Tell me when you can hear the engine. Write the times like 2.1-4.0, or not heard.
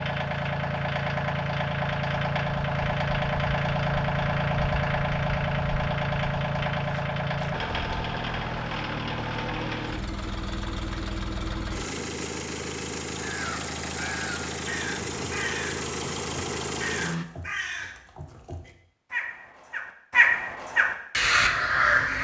0.0-17.2.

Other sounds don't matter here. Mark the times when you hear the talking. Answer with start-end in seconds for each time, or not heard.
not heard.